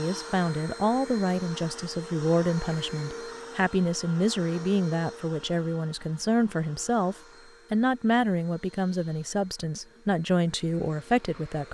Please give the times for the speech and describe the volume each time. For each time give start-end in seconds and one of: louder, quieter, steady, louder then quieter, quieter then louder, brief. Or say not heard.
0.0-11.6 steady.